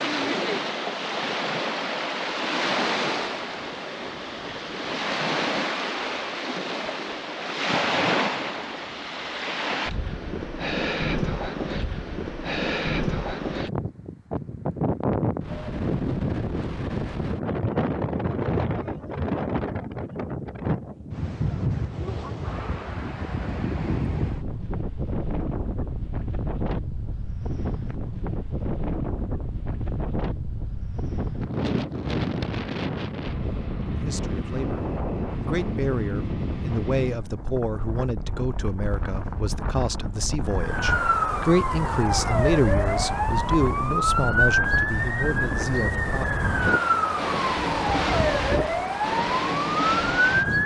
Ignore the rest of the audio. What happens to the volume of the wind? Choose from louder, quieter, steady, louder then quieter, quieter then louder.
steady.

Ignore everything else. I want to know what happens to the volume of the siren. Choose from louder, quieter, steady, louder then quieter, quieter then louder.
steady.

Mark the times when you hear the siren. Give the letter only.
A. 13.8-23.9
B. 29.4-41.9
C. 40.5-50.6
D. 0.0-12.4
C.